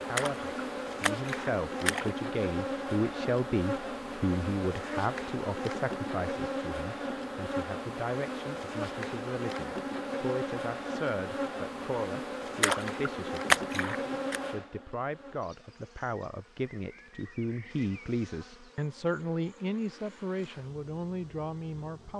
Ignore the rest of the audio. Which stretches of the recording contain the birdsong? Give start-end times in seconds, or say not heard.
not heard.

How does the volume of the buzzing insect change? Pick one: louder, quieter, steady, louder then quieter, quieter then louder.
quieter.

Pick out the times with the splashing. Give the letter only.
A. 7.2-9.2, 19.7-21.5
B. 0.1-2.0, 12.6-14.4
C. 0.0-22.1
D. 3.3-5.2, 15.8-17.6
B.